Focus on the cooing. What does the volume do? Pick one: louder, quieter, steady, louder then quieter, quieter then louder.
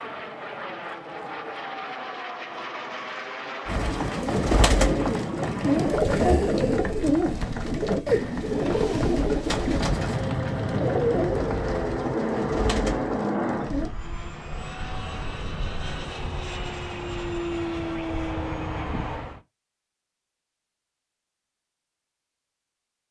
quieter.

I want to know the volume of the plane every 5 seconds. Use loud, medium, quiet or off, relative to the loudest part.
medium, medium, loud, loud, off.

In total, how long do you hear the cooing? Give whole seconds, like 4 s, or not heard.
10 s.